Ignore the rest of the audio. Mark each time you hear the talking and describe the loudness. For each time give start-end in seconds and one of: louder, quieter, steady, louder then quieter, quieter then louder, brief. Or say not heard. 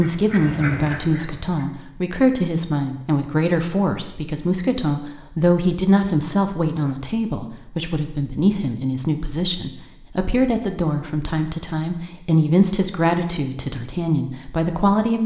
0.0-15.2 steady.